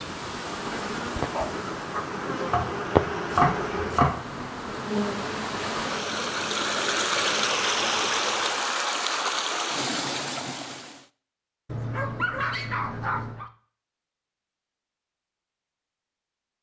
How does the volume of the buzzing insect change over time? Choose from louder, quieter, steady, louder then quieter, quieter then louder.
louder then quieter.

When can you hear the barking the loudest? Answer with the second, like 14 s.
12 s.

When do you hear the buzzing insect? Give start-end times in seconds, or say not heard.
0.0-8.8.